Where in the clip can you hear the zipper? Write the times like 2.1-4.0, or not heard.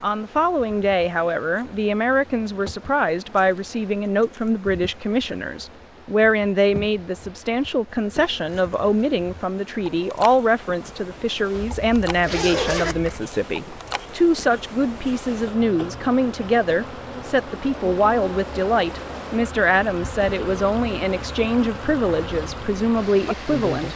11.5-13.2.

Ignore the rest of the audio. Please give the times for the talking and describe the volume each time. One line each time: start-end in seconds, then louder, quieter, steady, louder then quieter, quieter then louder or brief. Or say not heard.
0.0-23.9 steady.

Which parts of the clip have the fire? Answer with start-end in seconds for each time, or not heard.
not heard.